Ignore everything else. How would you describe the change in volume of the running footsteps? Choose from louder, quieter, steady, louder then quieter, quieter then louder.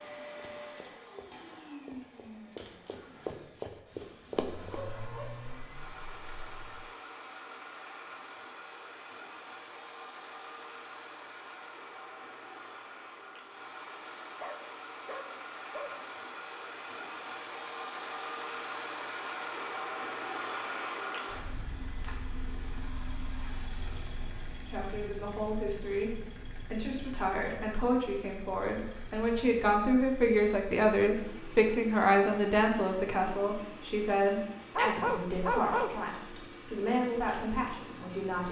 louder.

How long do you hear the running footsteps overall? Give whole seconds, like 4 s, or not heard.
5 s.